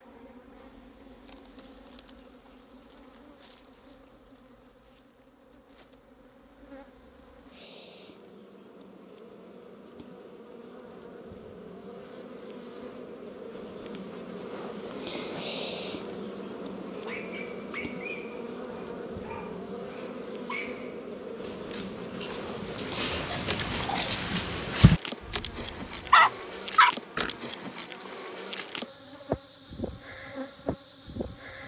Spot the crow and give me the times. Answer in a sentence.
The crow can't be heard in this clip.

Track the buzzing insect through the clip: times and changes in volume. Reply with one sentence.
You can hear the buzzing insect from 0.0 to 31.6 s, getting louder.